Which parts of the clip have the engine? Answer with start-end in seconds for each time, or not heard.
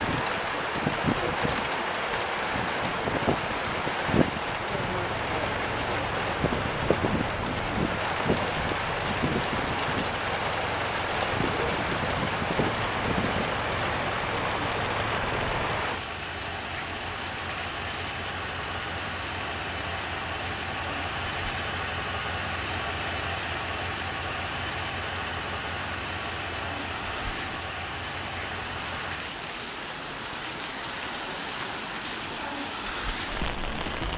4.8-29.4.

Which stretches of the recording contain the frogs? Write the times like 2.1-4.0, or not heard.
not heard.